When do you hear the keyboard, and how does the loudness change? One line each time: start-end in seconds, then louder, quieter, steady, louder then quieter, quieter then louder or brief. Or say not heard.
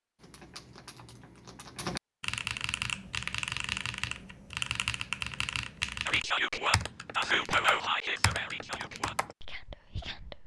0.2-9.3 louder then quieter.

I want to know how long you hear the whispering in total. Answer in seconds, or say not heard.
4 s.